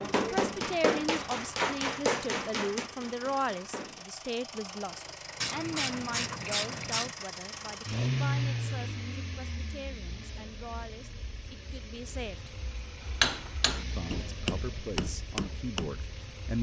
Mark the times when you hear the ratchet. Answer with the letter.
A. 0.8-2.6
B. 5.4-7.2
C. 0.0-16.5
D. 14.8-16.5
B.